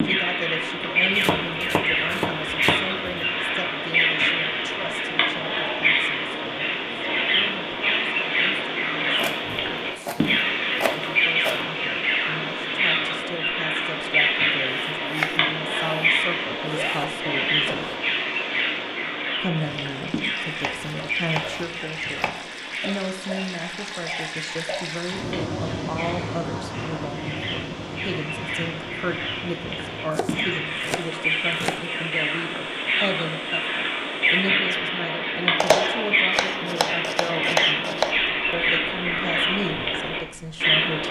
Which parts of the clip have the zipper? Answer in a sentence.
The zipper can be heard from 16.6 to 18.0 s.